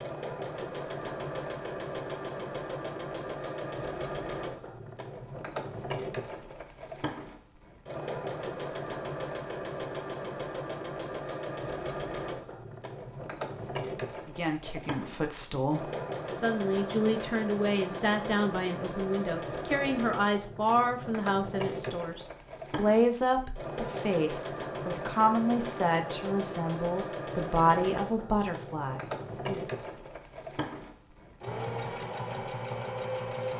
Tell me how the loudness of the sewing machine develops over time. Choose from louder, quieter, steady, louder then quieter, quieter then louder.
steady.